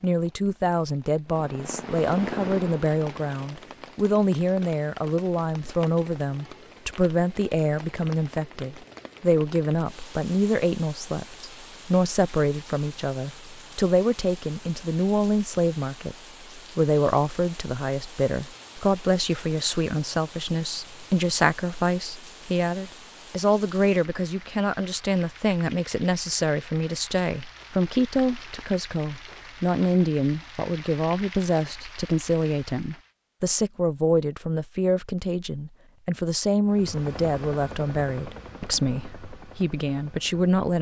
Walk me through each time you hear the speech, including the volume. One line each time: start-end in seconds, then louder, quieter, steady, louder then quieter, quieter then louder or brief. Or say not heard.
0.0-40.7 steady.